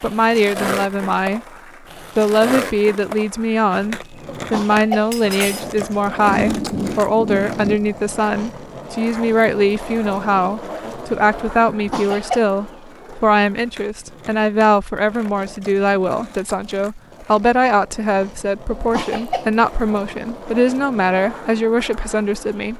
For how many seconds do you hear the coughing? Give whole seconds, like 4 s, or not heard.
3 s.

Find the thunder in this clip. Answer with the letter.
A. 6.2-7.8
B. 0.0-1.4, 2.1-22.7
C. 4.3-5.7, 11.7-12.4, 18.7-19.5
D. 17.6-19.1
A.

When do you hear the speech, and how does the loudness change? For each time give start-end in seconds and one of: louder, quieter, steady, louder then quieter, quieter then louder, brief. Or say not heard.
0.0-1.4 brief
2.1-22.7 steady.